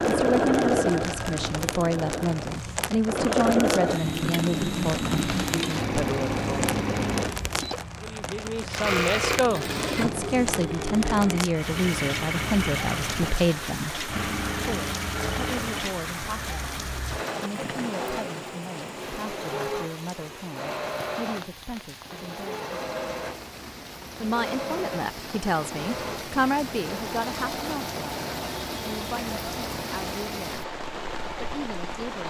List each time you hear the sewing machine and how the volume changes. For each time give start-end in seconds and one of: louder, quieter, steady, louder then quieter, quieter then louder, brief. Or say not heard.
0.0-32.1 quieter.